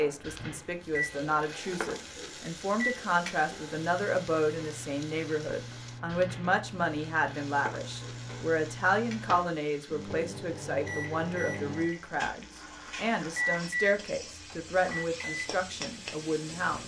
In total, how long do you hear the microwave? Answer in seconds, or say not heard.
17 s.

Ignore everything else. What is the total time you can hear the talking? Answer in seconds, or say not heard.
17 s.